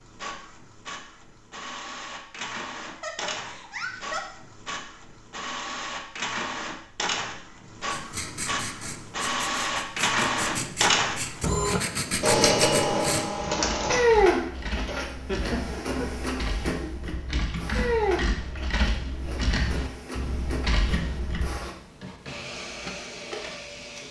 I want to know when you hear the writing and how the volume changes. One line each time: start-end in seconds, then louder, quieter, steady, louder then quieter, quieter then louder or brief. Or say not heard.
7.8-13.2 louder.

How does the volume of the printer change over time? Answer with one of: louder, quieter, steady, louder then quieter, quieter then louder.
louder then quieter.